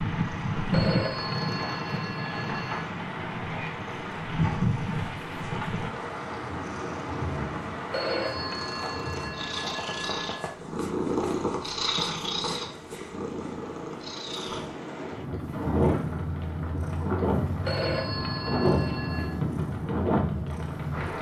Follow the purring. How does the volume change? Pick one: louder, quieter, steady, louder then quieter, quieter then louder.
louder then quieter.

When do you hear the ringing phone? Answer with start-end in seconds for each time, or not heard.
0.7-2.9, 7.9-10.5, 17.6-19.3.